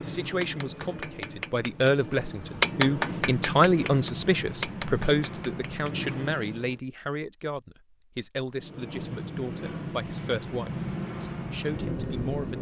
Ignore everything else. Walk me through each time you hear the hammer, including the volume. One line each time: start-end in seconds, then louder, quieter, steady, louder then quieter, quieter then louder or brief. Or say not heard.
0.2-6.1 louder then quieter.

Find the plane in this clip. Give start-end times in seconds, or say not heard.
0.0-6.8, 8.5-12.5.